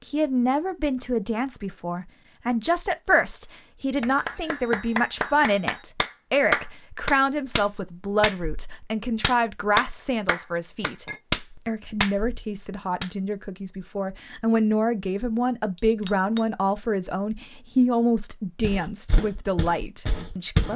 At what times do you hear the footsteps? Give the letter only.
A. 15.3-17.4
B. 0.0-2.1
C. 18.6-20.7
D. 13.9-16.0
C.